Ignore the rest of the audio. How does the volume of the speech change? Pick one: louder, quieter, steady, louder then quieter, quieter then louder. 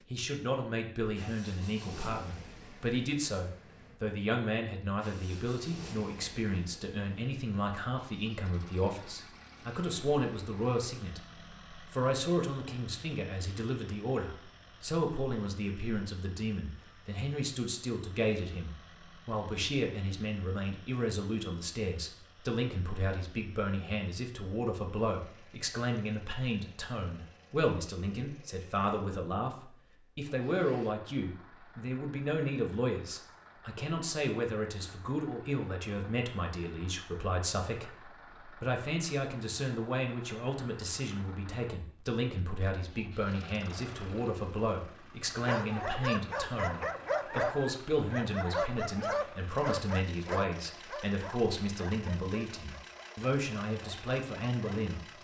steady.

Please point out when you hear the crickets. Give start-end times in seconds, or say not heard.
not heard.